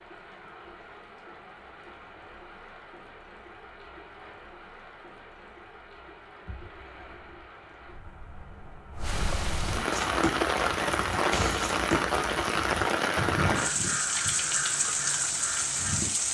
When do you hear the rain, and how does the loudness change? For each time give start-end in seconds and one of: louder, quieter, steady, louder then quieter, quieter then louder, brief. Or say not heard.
0.0-16.2 louder.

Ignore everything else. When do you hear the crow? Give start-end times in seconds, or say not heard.
9.9-16.1.